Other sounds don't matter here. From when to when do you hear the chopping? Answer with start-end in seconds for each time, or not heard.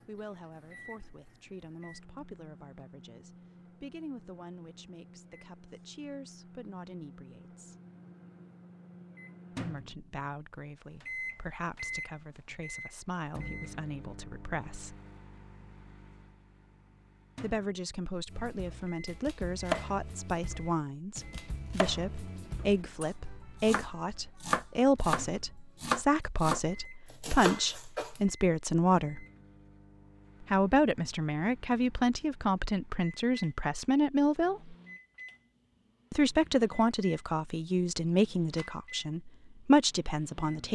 18.3-28.3.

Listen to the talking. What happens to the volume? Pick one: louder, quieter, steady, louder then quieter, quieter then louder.
louder.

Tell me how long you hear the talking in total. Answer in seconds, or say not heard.
34 s.